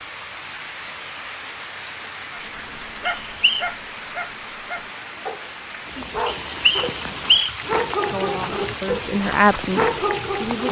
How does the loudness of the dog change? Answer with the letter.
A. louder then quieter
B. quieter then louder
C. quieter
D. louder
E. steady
D.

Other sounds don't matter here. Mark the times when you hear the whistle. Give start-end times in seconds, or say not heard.
3.0-3.6, 6.5-7.5.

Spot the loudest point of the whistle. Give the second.
7 s.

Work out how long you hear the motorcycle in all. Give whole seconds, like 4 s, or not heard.
not heard.